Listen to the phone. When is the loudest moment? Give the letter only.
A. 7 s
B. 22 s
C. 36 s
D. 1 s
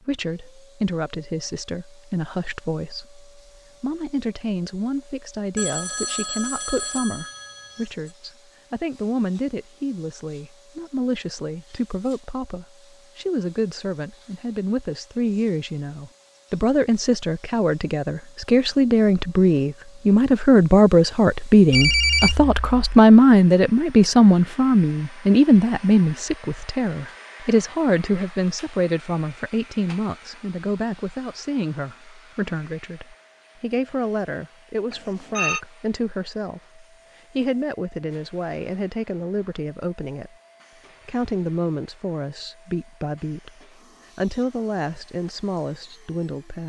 B.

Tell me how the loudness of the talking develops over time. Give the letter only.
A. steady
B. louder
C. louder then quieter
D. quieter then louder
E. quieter
C.